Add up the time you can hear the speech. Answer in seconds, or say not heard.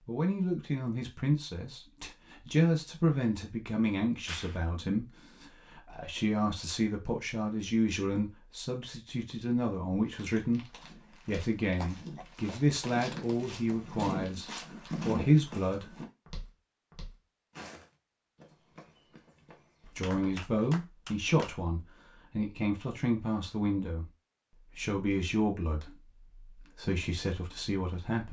24 s.